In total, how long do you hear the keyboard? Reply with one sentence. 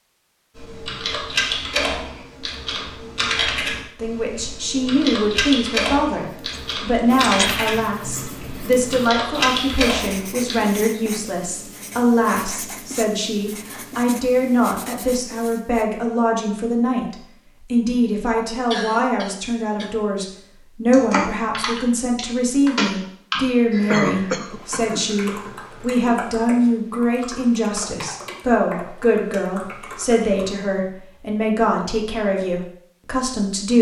The keyboard can be heard for 20 seconds in total.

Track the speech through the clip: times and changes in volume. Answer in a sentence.
You can hear the speech from 4.0 to 33.7 s, at a steady volume.